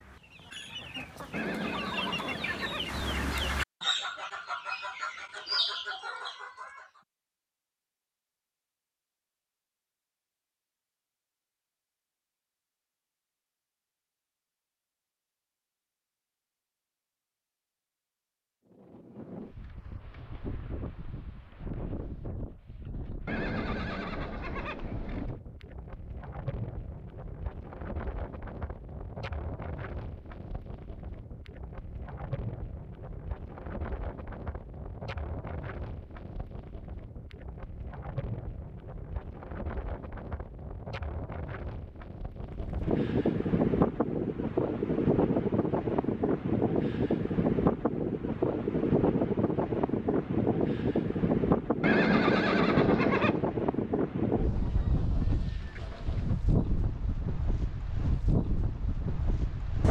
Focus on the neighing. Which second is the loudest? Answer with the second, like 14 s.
52 s.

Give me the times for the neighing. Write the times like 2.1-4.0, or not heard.
1.3-3.4, 23.2-25.3, 51.8-53.5.